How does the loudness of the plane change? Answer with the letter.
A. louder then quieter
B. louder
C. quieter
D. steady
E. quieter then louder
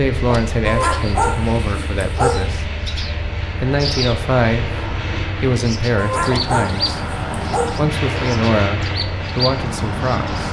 B.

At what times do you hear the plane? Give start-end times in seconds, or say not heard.
0.0-10.4.